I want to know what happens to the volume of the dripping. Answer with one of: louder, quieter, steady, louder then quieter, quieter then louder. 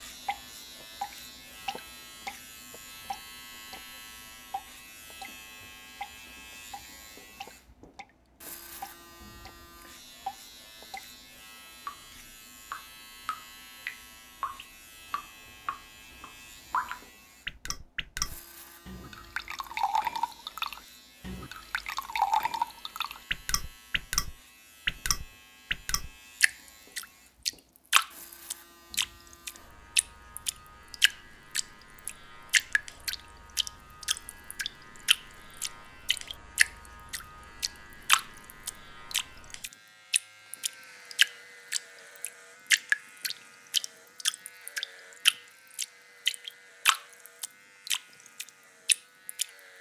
louder.